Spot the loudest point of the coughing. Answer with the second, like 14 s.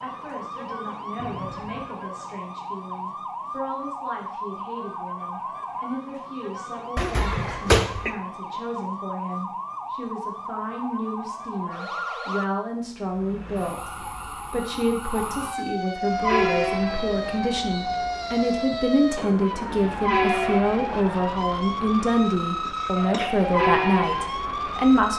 8 s.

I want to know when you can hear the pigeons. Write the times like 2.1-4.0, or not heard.
not heard.